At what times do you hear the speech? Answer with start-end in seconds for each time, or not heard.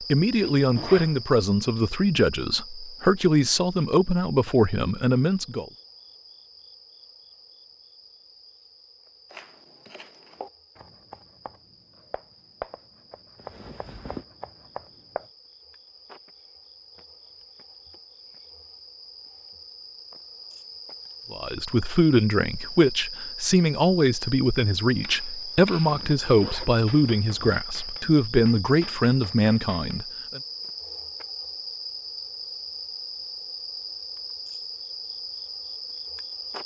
0.0-5.7, 21.3-30.4.